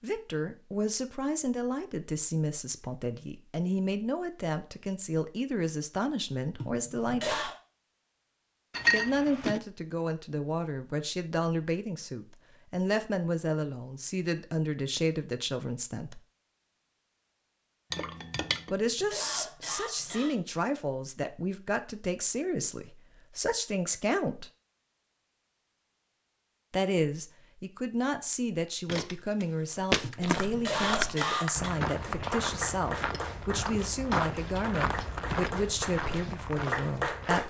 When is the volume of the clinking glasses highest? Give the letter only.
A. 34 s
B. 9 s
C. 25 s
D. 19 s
B.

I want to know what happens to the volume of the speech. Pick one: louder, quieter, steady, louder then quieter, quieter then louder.
steady.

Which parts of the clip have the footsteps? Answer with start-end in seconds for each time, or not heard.
28.9-37.4.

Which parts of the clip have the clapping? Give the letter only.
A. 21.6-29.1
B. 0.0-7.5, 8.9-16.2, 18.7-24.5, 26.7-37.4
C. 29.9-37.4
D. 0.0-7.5
C.